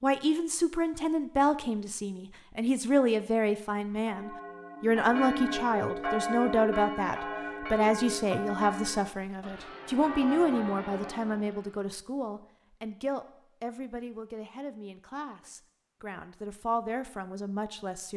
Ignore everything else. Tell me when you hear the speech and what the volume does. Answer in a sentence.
The speech can be heard from 0.0 to 18.1 s, getting quieter.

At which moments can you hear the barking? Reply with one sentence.
The barking can't be heard in this clip.